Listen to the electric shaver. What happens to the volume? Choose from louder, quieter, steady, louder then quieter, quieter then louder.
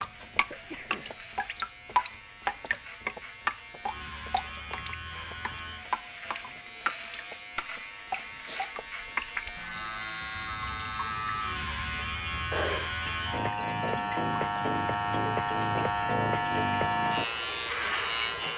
louder.